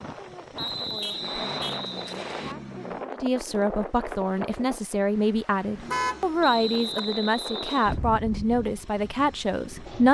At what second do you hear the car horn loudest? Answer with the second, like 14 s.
6 s.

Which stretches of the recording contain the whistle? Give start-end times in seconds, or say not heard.
0.6-2.5, 6.4-8.0.